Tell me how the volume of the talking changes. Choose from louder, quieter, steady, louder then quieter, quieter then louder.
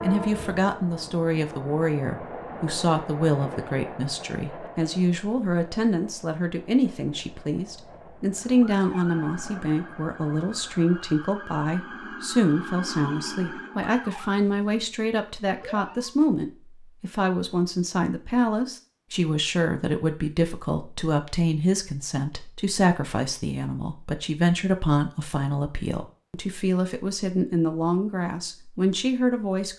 steady.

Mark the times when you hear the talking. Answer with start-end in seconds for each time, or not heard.
0.0-29.7.